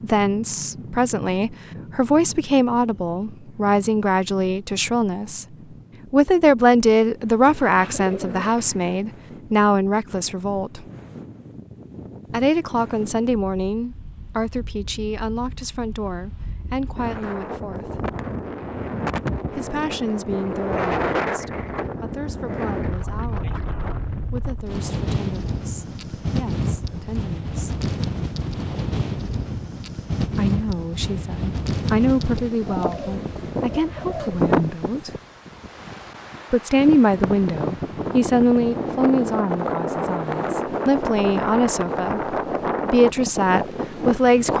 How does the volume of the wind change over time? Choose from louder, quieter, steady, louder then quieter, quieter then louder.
louder.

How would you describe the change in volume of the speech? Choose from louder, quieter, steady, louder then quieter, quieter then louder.
quieter then louder.